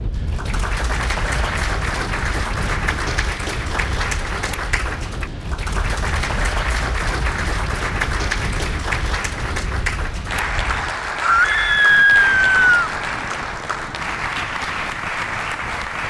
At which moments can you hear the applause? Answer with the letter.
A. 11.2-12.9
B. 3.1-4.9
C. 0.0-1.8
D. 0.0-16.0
D.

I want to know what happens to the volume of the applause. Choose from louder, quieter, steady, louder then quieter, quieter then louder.
steady.